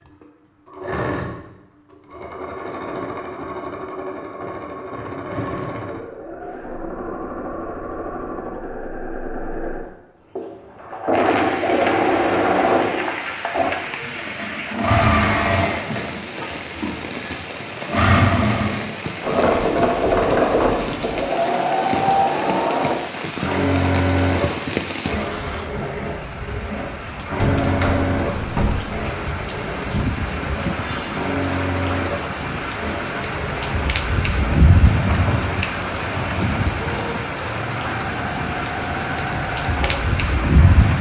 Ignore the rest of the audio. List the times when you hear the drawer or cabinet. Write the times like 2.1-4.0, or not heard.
27.4-29.0.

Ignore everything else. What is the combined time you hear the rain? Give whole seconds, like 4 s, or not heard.
30 s.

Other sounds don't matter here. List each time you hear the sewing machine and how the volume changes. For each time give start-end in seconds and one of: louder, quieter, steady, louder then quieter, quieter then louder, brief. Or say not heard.
0.0-40.9 louder then quieter.